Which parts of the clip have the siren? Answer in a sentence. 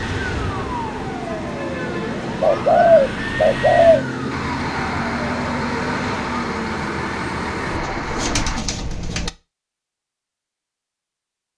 You can hear the siren from 0.0 to 7.8 s.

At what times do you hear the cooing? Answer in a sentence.
You can hear the cooing from 2.4 to 4.0 s and from 7.7 to 9.3 s.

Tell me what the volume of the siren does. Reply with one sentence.
The volume of the siren stays about the same.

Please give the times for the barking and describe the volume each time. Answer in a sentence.
You can't hear the barking here.